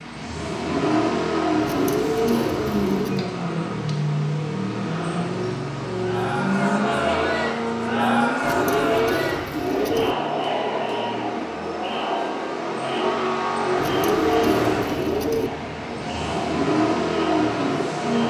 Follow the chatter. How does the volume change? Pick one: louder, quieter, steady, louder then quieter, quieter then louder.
quieter.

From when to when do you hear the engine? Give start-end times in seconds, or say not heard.
0.0-18.2.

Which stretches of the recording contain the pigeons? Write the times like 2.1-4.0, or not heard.
1.6-3.2, 8.4-10.2, 13.8-15.5.